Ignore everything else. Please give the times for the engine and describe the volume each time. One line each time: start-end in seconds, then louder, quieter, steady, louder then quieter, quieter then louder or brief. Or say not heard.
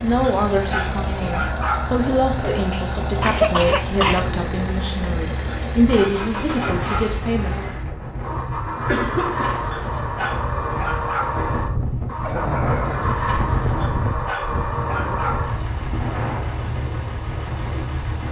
0.0-18.2 steady.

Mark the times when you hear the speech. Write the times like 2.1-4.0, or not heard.
0.0-7.5.